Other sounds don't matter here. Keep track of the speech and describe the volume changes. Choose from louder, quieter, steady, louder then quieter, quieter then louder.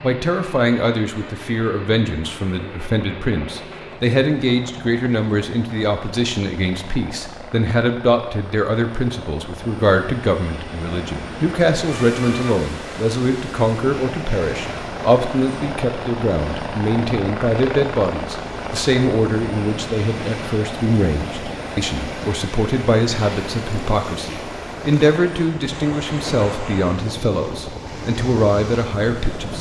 steady.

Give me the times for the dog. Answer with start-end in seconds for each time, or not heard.
not heard.